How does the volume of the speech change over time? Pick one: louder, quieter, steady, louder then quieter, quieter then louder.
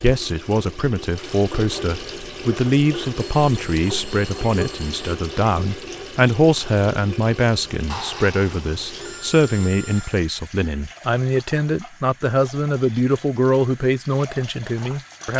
steady.